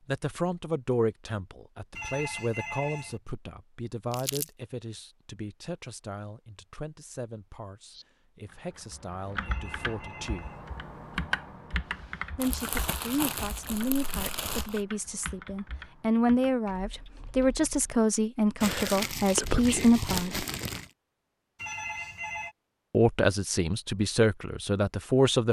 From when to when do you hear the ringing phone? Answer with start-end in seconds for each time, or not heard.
1.9-3.2, 9.4-10.7, 21.6-22.6.